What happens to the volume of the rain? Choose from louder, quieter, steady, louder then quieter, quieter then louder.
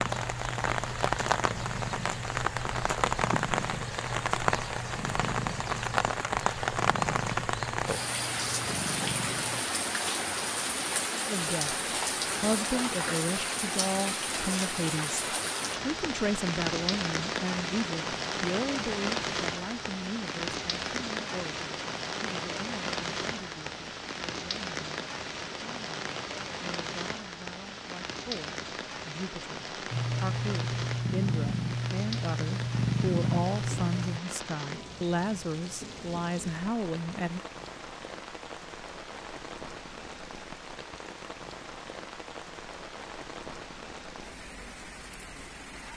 quieter.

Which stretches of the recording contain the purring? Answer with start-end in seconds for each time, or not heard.
0.0-9.7, 29.9-34.2.